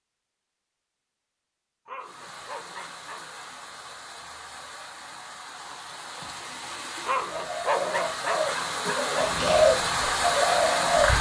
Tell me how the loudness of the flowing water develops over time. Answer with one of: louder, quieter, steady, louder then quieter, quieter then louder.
louder.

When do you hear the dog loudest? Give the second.
8 s.